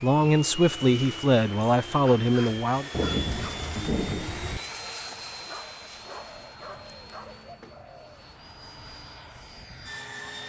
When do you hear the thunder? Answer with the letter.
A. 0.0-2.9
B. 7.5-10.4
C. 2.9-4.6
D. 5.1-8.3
C.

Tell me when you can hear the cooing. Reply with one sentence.
You can hear the cooing from 5.1 to 8.3 s.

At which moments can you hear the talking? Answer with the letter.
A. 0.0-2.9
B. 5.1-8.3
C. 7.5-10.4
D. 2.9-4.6
A.